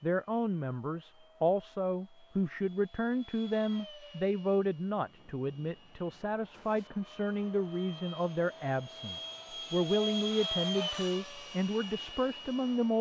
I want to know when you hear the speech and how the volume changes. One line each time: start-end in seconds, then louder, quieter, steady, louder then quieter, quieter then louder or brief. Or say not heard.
0.0-12.9 steady.